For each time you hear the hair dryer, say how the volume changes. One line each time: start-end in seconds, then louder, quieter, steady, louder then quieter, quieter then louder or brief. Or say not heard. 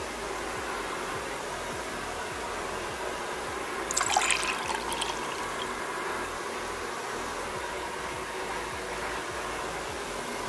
0.0-10.4 steady.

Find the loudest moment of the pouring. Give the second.
4 s.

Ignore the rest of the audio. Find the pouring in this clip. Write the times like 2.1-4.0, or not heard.
3.9-5.5.